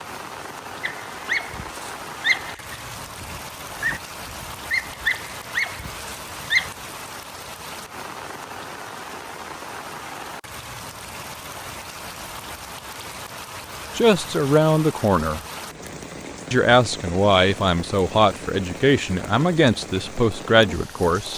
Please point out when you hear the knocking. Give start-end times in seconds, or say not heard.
not heard.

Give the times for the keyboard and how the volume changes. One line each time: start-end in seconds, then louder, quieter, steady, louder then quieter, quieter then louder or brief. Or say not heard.
not heard.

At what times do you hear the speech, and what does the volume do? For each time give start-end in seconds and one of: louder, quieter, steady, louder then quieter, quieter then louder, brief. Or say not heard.
13.9-15.4 brief
16.5-21.3 steady.